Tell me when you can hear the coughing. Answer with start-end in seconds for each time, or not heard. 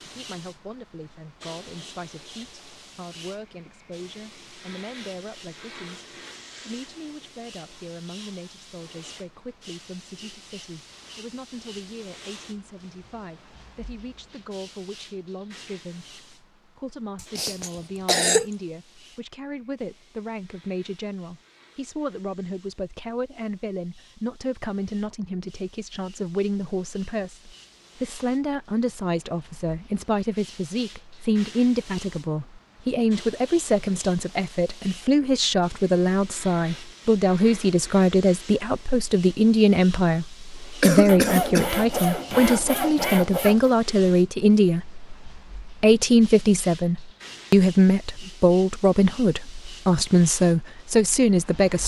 17.1-18.4, 40.8-41.7.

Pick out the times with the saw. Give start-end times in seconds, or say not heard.
41.0-43.7.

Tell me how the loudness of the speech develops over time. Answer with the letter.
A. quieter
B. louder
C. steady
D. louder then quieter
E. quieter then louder
B.